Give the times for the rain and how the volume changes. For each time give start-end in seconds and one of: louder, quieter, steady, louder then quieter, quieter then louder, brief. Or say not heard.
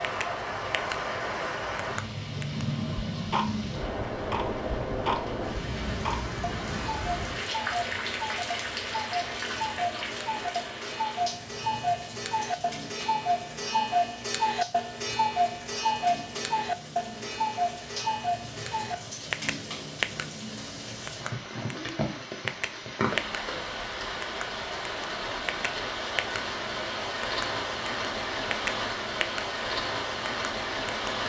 0.0-31.2 quieter then louder.